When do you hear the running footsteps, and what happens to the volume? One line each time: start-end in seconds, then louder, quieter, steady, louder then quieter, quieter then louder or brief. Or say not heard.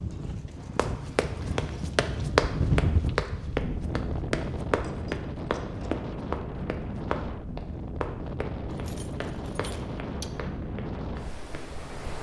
0.8-11.7 quieter.